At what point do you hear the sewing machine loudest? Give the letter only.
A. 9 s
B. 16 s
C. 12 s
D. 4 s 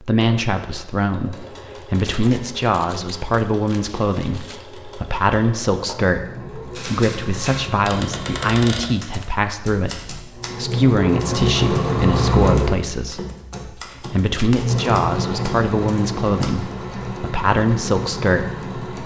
C.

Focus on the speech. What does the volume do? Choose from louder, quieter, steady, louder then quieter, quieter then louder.
steady.